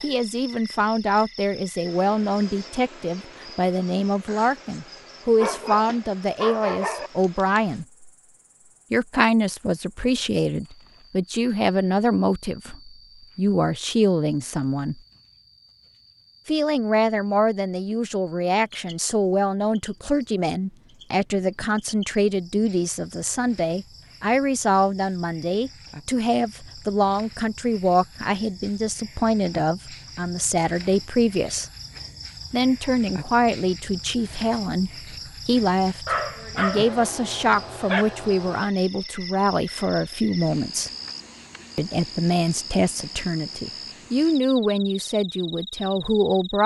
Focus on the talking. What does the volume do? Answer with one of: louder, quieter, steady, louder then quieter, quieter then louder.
steady.